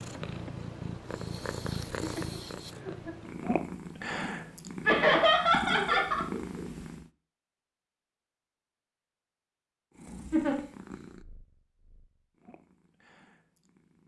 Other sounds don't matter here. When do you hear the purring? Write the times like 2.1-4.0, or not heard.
0.0-7.1, 9.9-14.0.